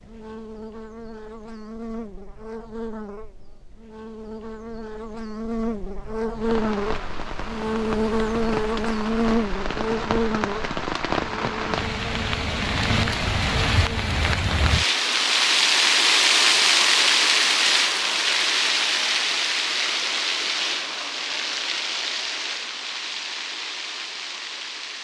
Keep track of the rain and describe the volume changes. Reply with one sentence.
The volume of the rain goes up, then down.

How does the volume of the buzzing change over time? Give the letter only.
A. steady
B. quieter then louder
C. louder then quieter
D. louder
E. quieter
C.